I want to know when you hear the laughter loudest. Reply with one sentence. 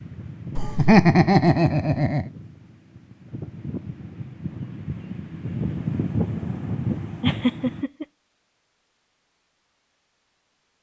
The volume of the laughter peaks at 1 second.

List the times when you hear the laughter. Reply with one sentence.
You can hear the laughter from 0.6 to 2.2 s and from 7.2 to 8.1 s.